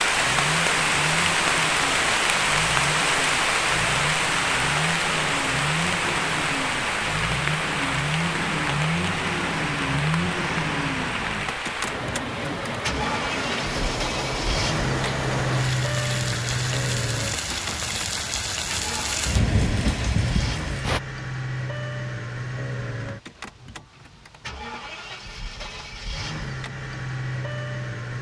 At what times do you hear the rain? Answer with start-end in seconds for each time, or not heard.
0.0-21.0.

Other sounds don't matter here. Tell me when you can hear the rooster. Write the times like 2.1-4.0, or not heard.
not heard.